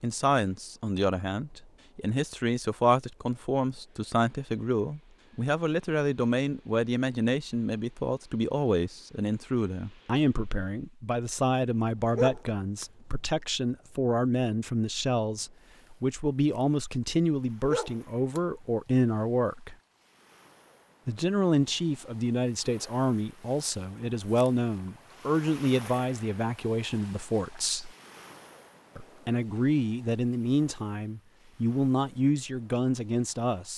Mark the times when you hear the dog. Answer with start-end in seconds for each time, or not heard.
12.2-12.8, 17.6-18.4.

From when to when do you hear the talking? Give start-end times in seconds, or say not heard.
0.0-19.8, 21.1-27.9, 28.9-33.7.